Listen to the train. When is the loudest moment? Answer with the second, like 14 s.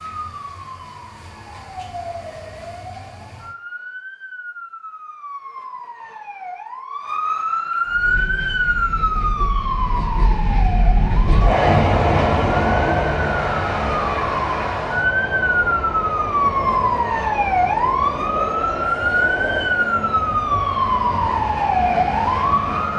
12 s.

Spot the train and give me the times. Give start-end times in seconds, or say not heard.
7.8-22.9.